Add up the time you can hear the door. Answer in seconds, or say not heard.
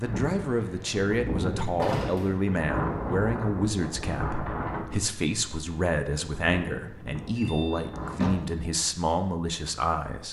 2 s.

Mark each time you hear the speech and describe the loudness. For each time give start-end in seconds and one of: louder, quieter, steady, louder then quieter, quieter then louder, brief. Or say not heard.
0.0-10.2 steady.